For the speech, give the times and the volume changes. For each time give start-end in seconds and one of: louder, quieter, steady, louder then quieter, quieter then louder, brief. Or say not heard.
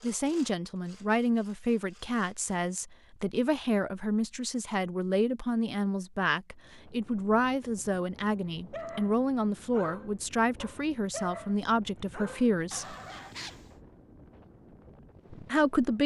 0.0-12.9 steady
15.3-16.0 brief.